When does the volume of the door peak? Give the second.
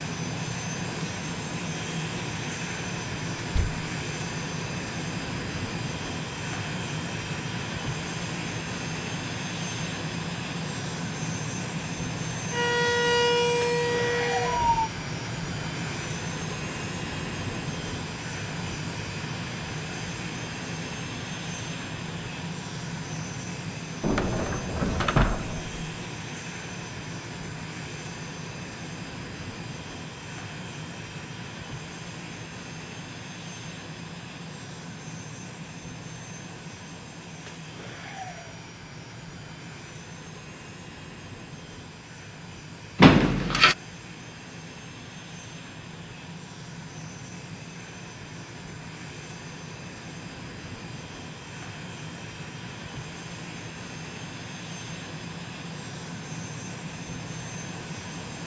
43 s.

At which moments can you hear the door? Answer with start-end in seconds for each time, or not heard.
3.4-3.8, 24.0-25.8, 43.0-43.8.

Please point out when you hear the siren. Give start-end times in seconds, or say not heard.
12.5-14.9.